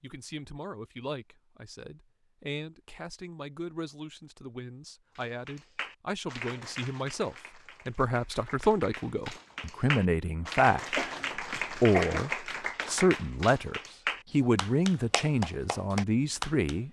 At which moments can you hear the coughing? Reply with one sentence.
The coughing can be heard from 10.9 to 12.3 s.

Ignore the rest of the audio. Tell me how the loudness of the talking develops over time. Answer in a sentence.
The volume of the talking goes up.